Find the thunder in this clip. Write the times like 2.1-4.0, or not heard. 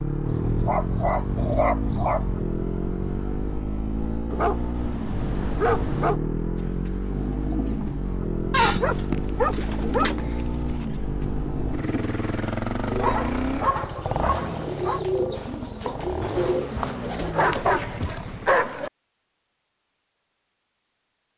16.2-17.1.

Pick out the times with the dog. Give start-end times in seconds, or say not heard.
0.2-2.5, 4.3-6.2, 8.5-10.3, 13.0-15.0, 17.3-18.9.